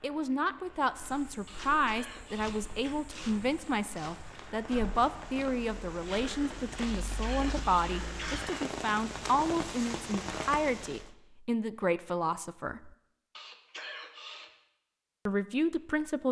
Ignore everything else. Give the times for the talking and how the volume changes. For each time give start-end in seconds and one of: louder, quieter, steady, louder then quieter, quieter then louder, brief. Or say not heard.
0.0-12.9 steady
15.2-16.2 brief.